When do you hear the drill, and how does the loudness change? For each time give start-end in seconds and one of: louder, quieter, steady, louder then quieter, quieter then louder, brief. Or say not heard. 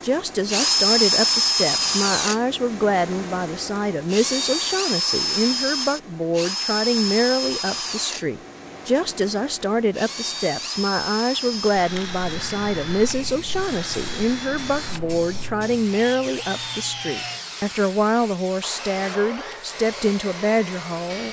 0.0-21.2 quieter.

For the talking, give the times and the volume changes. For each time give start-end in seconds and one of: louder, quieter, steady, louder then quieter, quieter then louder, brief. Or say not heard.
0.0-21.2 steady.